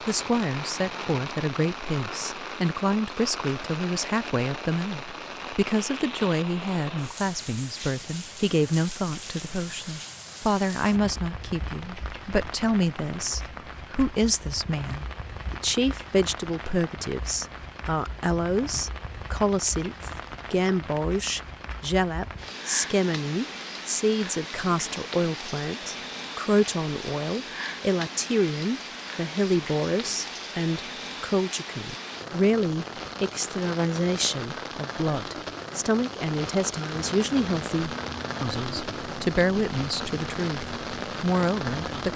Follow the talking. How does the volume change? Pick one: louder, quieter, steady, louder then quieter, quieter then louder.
steady.